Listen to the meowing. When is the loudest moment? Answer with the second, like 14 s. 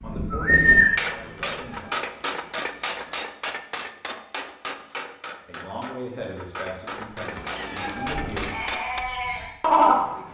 8 s.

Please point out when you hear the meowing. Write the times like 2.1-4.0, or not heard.
1.2-3.2, 7.3-8.6.